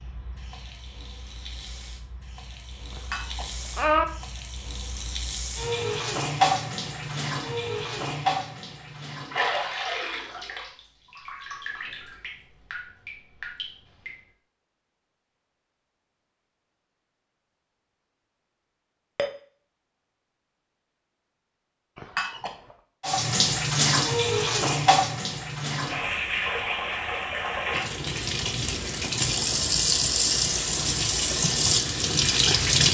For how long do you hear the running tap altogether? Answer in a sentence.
You can hear the running tap for 24 seconds altogether.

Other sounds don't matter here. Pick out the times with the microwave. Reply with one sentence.
The microwave can't be heard in this clip.